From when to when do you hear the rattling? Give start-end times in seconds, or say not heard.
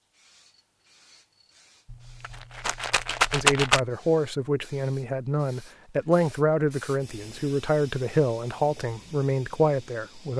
1.9-3.8.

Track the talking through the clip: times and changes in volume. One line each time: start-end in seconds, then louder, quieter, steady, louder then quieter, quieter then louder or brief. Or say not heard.
3.3-10.3 steady.